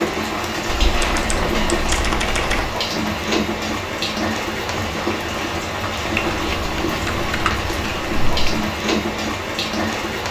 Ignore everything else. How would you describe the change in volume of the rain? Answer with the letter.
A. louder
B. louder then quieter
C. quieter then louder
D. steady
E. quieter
D.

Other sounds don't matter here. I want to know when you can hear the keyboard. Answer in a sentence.
The keyboard can be heard from 0.7 to 2.7 s and from 6.2 to 8.7 s.